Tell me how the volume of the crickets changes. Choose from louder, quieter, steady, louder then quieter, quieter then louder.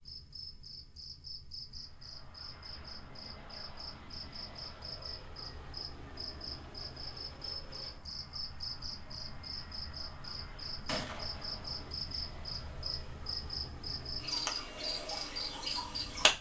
louder.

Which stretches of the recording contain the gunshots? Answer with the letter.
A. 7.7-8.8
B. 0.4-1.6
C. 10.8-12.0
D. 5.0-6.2
C.